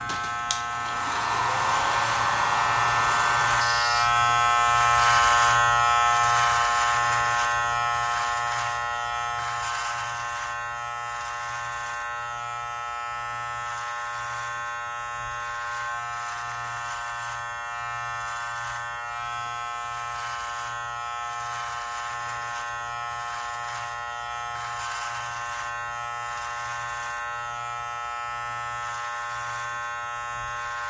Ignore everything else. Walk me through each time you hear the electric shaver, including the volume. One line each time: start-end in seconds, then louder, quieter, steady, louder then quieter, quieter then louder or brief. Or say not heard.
0.0-30.8 quieter.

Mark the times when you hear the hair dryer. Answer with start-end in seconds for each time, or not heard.
0.0-4.1.